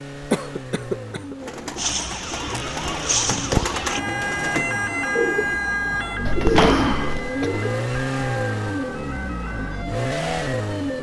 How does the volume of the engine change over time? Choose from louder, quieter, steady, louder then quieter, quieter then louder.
louder.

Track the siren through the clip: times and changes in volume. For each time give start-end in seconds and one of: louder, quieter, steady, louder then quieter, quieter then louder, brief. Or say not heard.
1.8-10.9 quieter.